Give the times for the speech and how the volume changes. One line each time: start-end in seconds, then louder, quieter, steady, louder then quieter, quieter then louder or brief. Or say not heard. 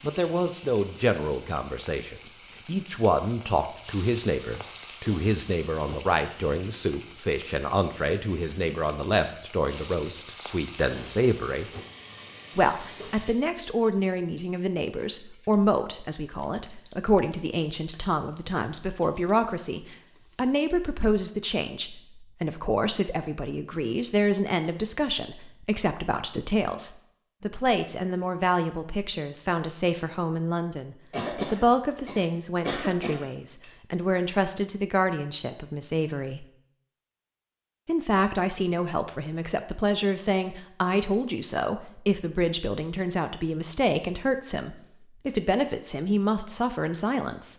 0.0-11.7 steady
12.6-36.5 steady
37.9-47.5 steady.